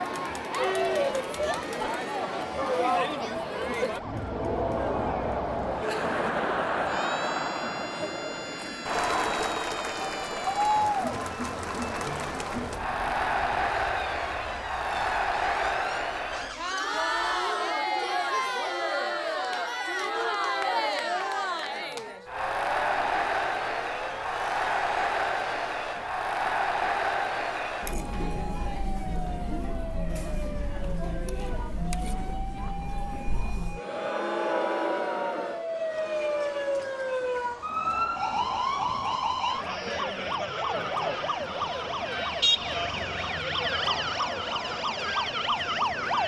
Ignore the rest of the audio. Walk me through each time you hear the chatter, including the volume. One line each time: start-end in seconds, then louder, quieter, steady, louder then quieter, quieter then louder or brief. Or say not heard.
0.0-46.2 quieter.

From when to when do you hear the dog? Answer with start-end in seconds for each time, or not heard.
not heard.